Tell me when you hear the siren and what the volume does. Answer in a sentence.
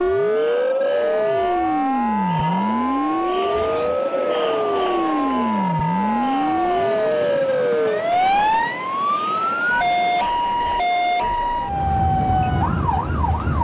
The siren can be heard from 0.0 to 13.6 s, at a steady volume.